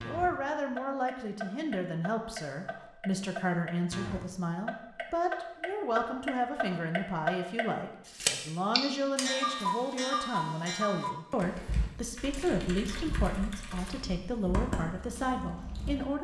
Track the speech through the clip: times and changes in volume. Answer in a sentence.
You can hear the speech from 0.0 to 16.1 s, at a steady volume.